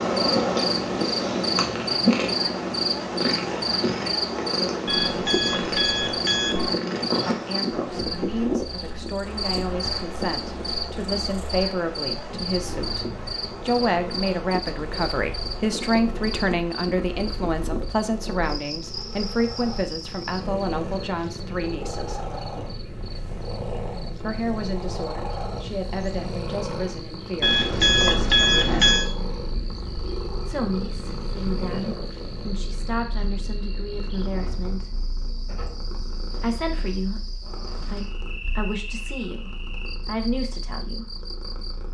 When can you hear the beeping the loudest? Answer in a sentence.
The loudest moment of the beeping is at 28 seconds.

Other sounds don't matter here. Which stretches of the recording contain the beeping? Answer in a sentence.
The beeping can be heard from 4.8 to 6.8 s and from 27.4 to 29.1 s.